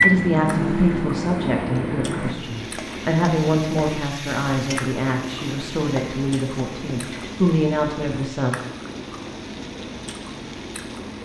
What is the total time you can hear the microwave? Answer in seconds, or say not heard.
2 s.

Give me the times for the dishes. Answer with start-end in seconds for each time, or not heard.
not heard.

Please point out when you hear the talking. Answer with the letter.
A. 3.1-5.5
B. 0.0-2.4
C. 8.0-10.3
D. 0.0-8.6
D.